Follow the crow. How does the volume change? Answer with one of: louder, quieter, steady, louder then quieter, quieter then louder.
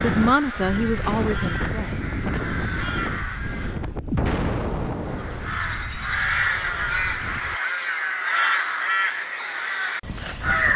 louder.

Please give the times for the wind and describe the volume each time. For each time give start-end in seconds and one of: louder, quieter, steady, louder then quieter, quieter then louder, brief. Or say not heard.
0.0-7.6 quieter.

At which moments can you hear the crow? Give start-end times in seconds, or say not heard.
0.0-3.9, 5.0-10.7.